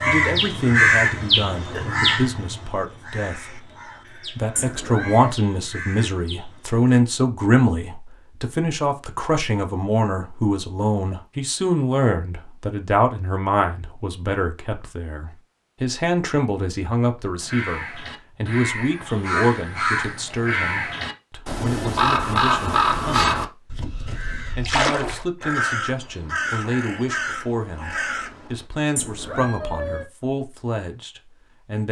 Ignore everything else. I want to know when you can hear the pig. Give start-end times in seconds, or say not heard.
not heard.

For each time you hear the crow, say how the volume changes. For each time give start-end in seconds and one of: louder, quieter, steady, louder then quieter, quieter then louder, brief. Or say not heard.
0.0-6.8 quieter
17.4-28.6 louder then quieter.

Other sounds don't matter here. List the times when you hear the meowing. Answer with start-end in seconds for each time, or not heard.
4.5-5.3, 28.9-30.1.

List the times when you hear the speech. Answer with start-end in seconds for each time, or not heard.
0.0-23.4, 24.6-31.8.